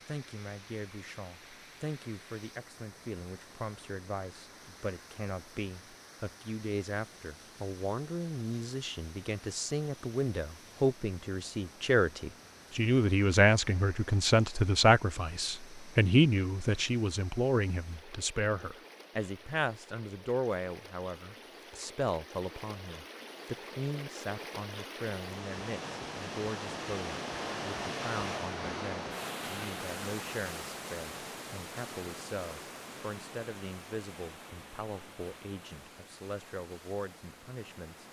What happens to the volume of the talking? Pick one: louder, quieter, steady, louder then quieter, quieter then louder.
louder then quieter.